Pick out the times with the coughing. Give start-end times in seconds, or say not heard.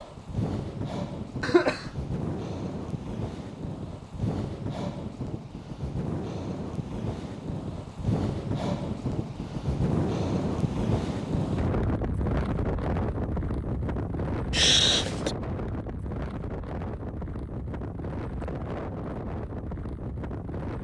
1.4-1.9, 14.5-15.3.